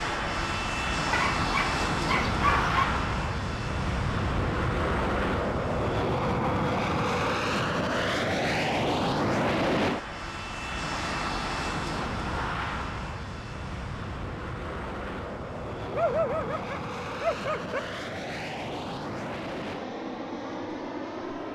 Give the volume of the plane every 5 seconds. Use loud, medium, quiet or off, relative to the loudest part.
loud, loud, medium, medium, medium.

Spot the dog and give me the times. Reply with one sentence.
The dog can be heard from 1.1 to 2.9 s and from 15.9 to 17.8 s.